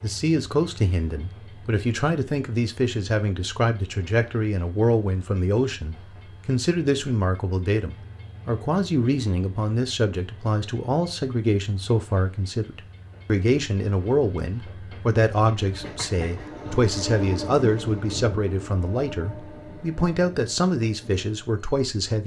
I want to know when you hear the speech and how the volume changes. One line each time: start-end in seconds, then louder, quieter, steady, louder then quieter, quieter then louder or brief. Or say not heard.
0.0-22.2 steady.